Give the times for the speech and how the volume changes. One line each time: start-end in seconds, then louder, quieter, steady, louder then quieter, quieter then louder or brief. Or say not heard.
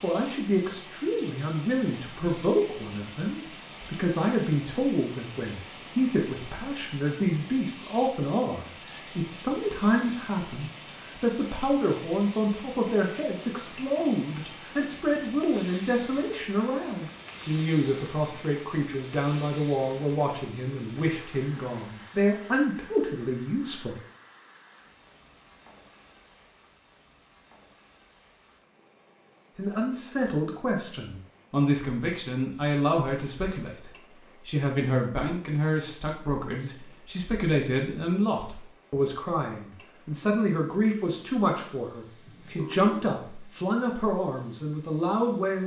0.0-23.9 steady
29.6-45.6 steady.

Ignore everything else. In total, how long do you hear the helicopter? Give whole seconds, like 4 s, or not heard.
not heard.